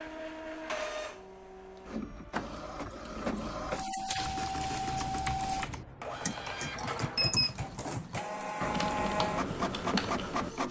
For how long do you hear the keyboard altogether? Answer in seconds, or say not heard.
6 s.